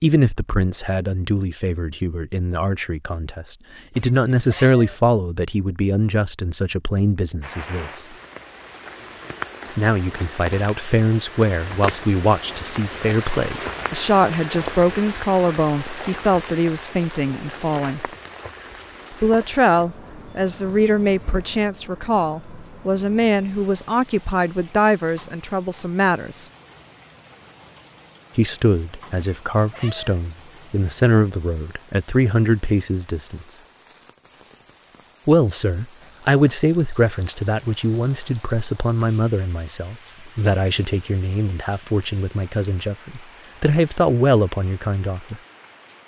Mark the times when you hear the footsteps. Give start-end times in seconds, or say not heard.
not heard.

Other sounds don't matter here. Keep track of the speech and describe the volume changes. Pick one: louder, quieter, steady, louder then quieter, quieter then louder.
steady.